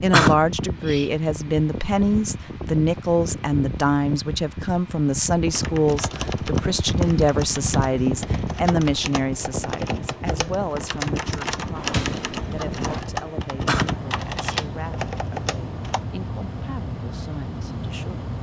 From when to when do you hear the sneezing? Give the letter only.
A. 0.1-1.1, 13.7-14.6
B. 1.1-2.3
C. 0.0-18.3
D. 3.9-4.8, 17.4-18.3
A.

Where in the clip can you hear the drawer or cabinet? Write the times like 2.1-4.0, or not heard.
11.8-13.0.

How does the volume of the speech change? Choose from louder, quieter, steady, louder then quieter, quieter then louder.
quieter.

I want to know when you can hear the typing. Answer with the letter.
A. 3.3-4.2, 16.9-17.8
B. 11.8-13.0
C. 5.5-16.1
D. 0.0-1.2
C.